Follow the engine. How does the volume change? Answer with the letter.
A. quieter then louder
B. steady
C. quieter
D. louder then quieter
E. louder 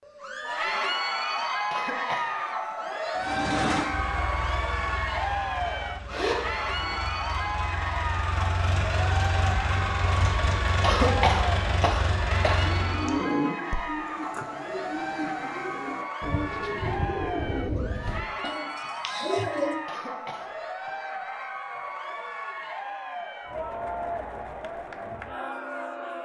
A.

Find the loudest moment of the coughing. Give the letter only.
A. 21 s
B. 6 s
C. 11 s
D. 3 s
C.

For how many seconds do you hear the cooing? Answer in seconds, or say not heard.
7 s.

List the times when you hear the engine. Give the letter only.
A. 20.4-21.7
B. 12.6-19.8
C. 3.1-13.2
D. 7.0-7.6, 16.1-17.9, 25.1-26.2
C.